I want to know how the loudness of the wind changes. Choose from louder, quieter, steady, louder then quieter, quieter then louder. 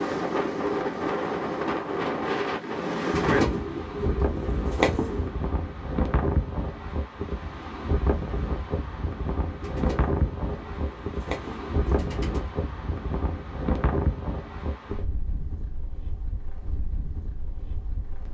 quieter.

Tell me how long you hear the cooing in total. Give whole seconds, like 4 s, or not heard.
5 s.